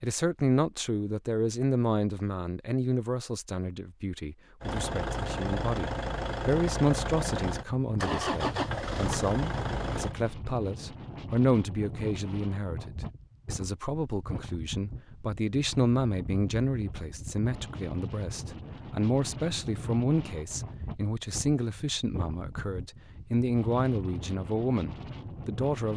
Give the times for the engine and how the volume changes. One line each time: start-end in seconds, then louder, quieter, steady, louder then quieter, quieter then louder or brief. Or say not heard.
4.6-10.2 steady.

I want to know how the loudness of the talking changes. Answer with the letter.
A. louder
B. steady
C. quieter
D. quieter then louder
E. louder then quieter
B.